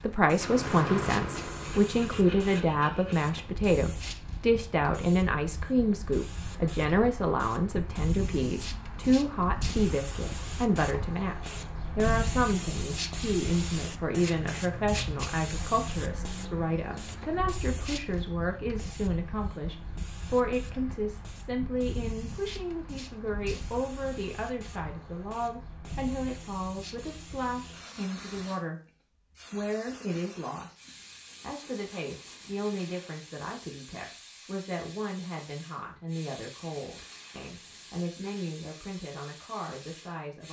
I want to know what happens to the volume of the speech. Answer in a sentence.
The loudness of the speech goes down.